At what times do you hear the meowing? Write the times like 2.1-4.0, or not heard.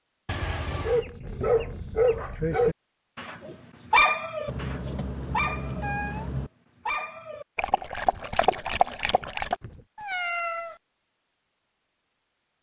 0.2-1.1, 4.5-6.5, 9.9-10.8.